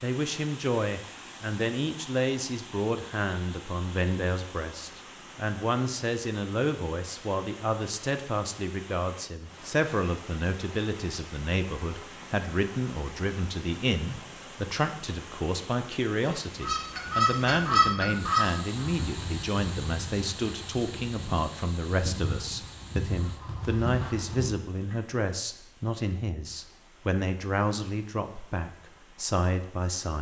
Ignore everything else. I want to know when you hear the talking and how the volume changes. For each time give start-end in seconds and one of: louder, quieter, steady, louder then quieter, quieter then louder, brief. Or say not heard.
0.0-30.1 steady.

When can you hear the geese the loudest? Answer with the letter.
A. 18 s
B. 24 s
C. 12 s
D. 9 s
A.